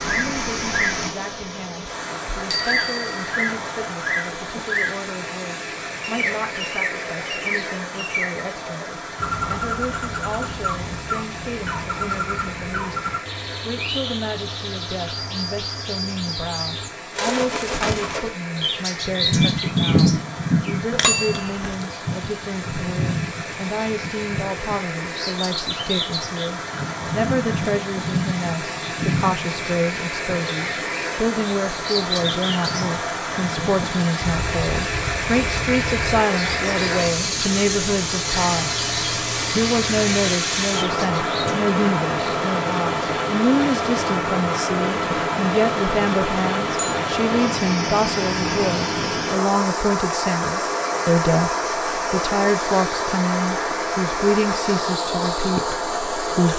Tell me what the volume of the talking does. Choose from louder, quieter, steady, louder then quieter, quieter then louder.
louder.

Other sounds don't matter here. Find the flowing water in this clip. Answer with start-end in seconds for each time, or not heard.
0.0-56.5.